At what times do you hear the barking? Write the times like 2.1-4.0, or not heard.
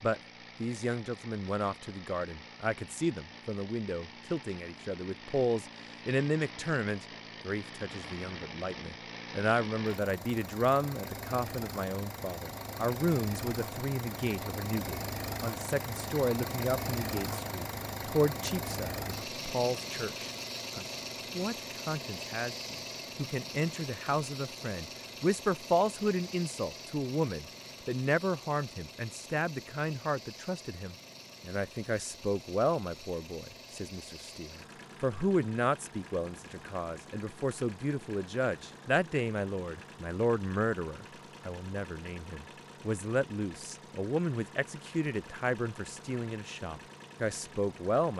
not heard.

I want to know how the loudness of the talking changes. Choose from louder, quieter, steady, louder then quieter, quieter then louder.
steady.